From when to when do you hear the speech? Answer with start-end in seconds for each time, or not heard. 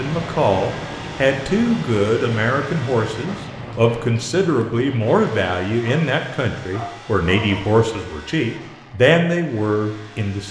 0.0-10.4.